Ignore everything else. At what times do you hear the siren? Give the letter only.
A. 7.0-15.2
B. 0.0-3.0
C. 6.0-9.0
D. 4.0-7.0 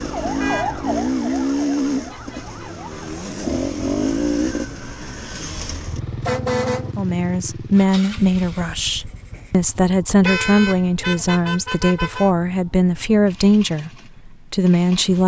B.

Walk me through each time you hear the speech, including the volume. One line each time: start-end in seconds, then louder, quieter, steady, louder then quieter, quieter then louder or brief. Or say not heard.
7.0-15.2 steady.